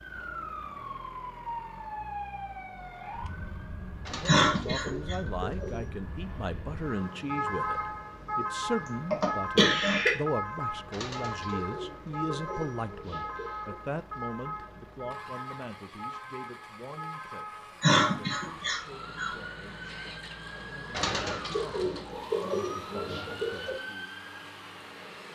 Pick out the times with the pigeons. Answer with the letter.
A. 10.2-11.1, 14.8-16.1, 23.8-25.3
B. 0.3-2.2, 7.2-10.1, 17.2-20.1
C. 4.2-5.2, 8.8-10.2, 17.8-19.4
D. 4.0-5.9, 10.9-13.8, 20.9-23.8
D.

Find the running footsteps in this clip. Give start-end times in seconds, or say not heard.
not heard.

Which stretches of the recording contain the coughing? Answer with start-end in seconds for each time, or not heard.
4.2-5.2, 8.8-10.2, 17.8-19.4.